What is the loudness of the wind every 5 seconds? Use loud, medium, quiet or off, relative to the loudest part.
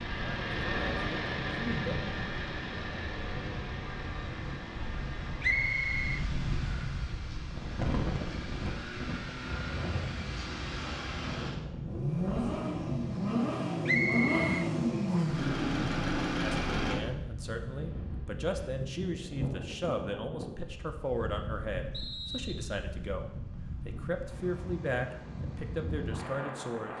medium, loud, loud, loud, medium, loud.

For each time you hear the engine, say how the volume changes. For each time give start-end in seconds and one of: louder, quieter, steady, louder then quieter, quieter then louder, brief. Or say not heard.
0.0-17.0 quieter then louder.